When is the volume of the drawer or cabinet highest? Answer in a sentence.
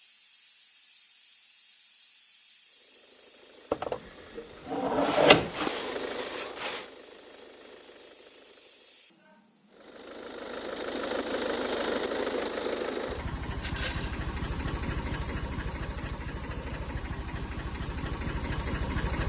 The loudest moment of the drawer or cabinet is at 5 seconds.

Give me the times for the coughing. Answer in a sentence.
You can't hear the coughing here.